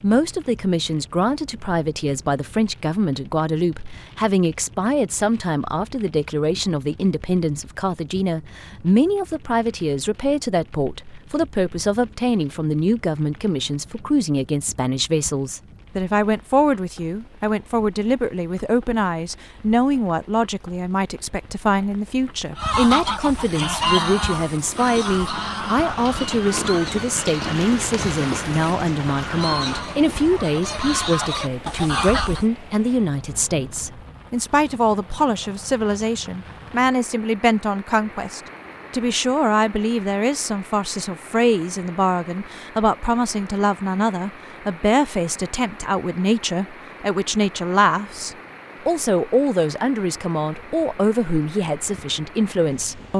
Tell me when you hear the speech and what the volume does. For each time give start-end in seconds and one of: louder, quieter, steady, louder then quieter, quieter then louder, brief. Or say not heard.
0.0-53.1 steady.